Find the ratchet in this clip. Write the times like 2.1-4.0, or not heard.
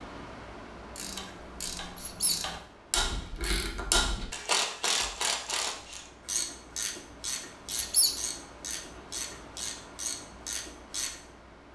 0.9-11.2.